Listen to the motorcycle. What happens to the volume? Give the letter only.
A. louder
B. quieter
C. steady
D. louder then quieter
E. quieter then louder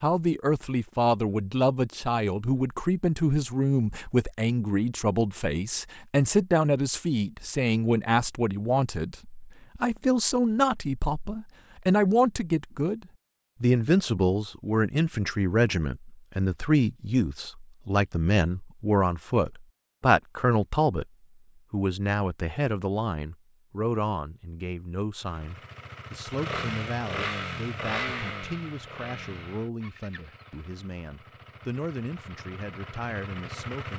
E.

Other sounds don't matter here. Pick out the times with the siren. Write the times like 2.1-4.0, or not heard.
not heard.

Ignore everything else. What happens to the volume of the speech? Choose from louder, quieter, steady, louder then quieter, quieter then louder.
quieter.